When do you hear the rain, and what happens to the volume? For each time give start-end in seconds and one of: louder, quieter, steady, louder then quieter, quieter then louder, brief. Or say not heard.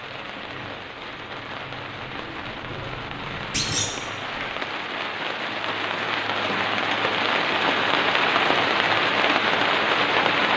0.0-10.5 louder.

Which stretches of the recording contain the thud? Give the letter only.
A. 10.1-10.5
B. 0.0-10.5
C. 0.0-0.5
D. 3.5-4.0
D.